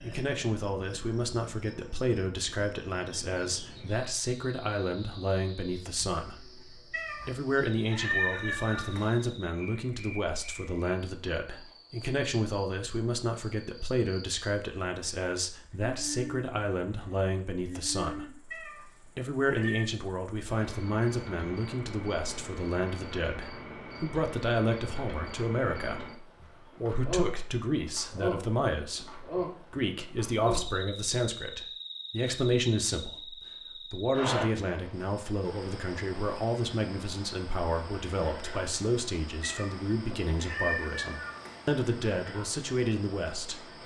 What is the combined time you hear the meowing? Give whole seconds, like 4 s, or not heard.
6 s.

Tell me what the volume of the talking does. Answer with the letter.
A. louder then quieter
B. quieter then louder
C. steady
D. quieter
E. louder
C.